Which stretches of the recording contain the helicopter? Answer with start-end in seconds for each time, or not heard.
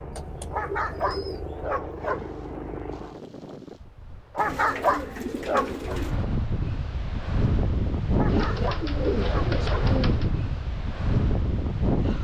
0.0-3.2.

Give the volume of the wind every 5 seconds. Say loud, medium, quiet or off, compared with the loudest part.
quiet, loud, loud.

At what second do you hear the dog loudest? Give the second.
5 s.